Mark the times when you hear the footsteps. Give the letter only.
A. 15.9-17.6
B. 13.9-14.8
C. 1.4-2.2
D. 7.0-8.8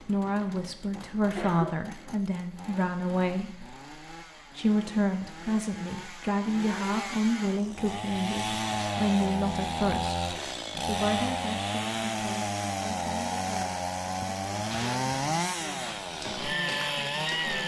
A.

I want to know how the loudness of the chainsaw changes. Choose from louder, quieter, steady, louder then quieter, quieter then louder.
louder.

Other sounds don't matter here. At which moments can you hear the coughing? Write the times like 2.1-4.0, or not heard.
1.4-2.2.